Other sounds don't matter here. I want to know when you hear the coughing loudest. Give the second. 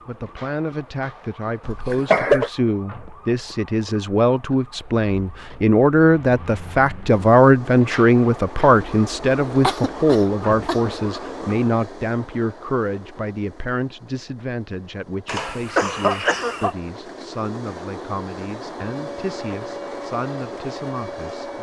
2 s.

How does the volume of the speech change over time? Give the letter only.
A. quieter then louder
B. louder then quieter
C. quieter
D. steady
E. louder
B.